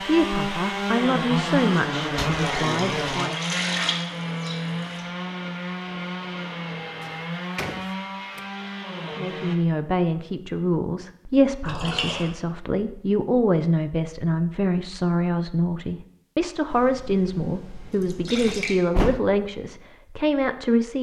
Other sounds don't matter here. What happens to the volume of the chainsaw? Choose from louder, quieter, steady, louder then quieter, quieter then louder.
quieter.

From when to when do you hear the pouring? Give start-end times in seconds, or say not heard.
2.3-5.0, 11.7-12.3, 16.7-18.8.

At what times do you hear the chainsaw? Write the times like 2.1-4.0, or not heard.
0.0-9.6.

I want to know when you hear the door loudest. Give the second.
19 s.